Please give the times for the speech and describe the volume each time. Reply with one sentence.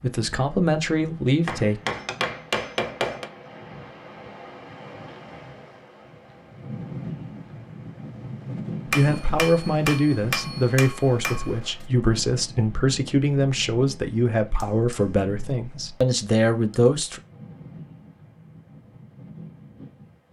You can hear the speech briefly from 0.0 to 1.8 s; and from 8.8 to 17.2 s, at a steady volume.